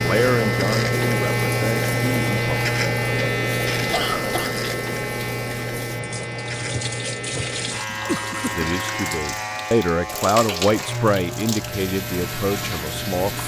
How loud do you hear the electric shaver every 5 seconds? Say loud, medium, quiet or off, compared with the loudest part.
loud, medium, medium.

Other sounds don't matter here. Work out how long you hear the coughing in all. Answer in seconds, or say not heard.
2 s.